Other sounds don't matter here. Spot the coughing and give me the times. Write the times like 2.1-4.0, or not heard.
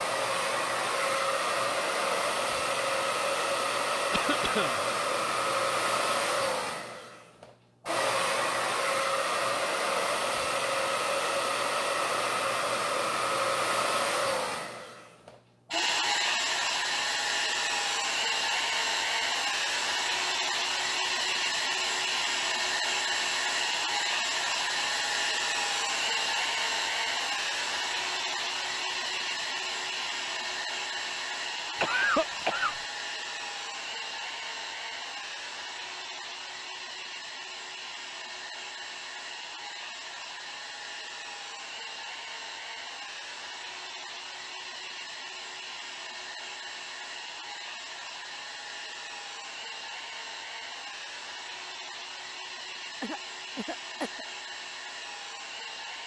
4.1-4.8, 31.8-32.8, 53.0-54.2.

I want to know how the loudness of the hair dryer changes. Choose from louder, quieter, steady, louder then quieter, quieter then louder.
quieter.